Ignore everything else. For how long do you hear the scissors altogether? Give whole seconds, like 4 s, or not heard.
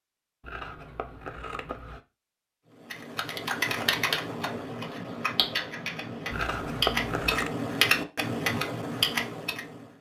3 s.